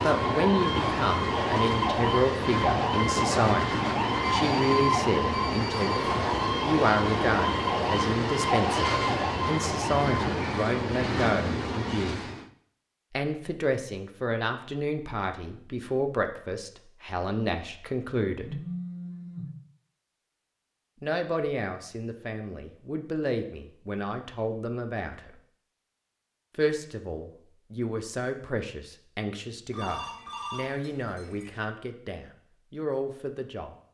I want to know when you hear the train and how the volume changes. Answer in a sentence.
The train can be heard from 0.0 to 12.5 s, at a steady volume.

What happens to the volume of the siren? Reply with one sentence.
The volume of the siren stays about the same.